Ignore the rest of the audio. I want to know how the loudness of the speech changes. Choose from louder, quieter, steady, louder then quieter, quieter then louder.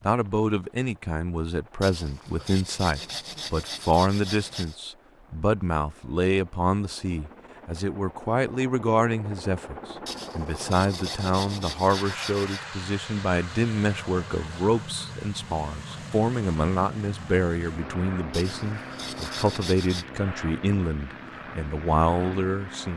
steady.